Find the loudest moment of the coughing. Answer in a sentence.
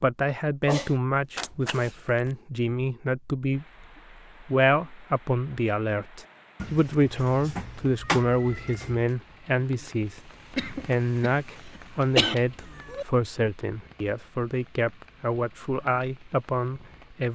The loudest moment of the coughing is at 12 seconds.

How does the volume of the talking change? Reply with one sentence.
The loudness of the talking stays about the same.